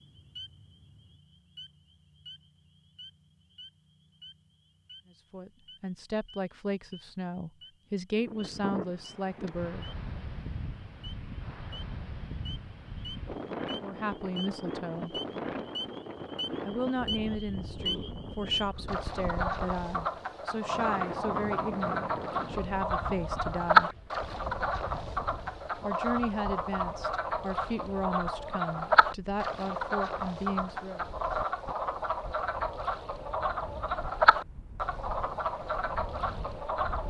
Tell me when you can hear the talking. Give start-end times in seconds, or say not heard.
5.1-9.9, 13.8-15.2, 16.6-23.9, 25.7-31.1.